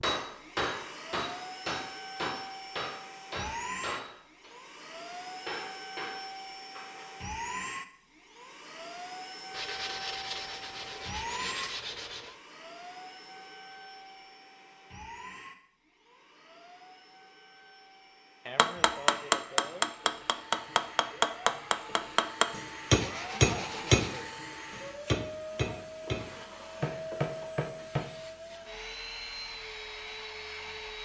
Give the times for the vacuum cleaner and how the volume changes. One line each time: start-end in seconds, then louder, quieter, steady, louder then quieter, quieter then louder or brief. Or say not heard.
0.1-31.0 quieter then louder.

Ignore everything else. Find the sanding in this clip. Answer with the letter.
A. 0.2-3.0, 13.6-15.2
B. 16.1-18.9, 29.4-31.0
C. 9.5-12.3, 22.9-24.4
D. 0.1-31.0
C.